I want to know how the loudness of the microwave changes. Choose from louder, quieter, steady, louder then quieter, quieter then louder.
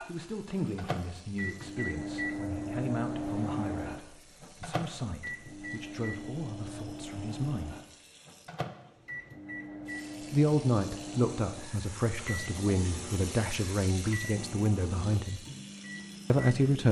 quieter.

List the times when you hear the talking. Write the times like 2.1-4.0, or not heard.
0.0-7.8, 10.2-15.4, 16.3-16.8.